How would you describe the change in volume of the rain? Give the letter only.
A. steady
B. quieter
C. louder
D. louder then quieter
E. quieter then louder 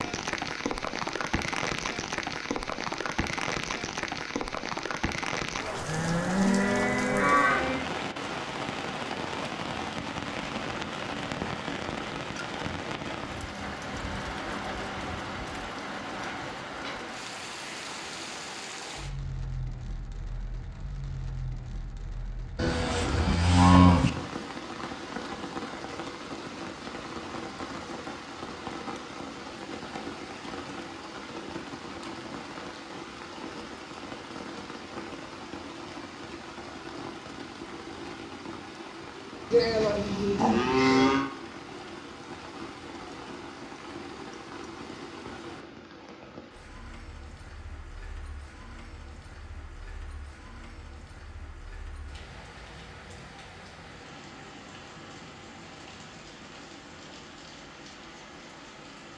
B.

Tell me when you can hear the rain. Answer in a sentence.
You can hear the rain from 0.0 to 59.1 s.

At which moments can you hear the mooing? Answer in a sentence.
The mooing can be heard from 5.8 to 7.8 s, from 22.6 to 24.1 s and from 39.5 to 41.3 s.